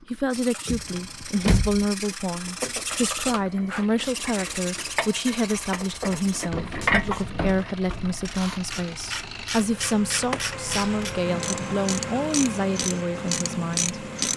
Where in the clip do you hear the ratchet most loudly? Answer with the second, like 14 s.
7 s.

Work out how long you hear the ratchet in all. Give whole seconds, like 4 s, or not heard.
12 s.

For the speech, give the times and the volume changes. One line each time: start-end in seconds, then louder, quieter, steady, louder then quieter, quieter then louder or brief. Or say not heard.
0.1-14.3 steady.